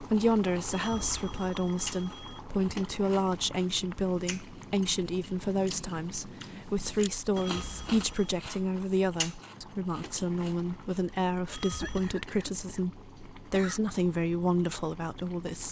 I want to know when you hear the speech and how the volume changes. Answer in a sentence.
You can hear the speech from 0.0 to 15.6 s, at a steady volume.